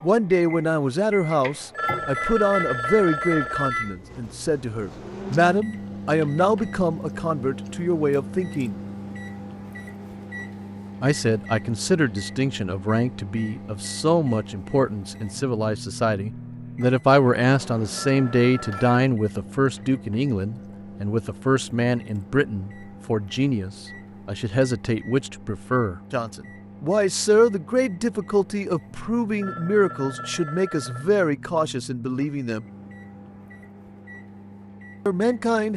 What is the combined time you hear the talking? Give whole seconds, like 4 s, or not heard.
31 s.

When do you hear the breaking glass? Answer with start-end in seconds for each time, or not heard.
not heard.